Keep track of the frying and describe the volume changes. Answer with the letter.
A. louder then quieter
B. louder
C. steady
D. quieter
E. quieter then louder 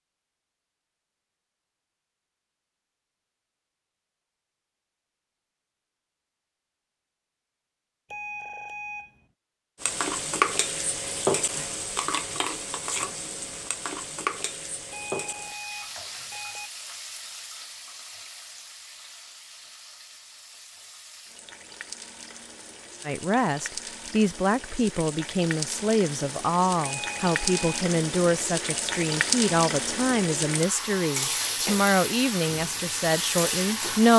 E.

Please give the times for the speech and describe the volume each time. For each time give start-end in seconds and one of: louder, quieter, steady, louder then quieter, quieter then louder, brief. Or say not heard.
23.1-34.1 steady.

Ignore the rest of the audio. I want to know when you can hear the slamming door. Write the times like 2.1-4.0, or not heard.
not heard.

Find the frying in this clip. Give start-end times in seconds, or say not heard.
9.8-34.1.